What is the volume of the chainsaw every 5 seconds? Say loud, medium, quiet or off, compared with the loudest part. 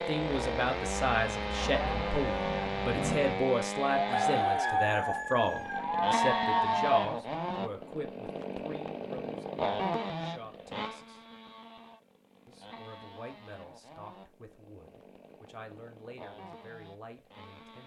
loud, loud, medium, quiet.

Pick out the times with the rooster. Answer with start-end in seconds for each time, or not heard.
4.1-5.8.